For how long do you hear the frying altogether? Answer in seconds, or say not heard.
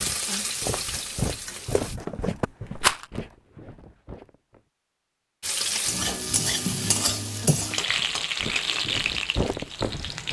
7 s.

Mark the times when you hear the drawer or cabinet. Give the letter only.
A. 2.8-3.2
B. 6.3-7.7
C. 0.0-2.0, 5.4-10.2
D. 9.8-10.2
B.